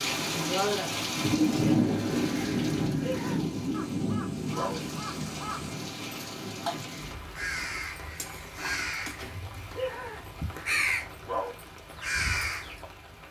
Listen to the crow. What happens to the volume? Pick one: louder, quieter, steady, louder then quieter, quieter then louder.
louder.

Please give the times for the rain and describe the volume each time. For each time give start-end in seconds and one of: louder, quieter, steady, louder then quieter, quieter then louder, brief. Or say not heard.
0.0-13.2 quieter.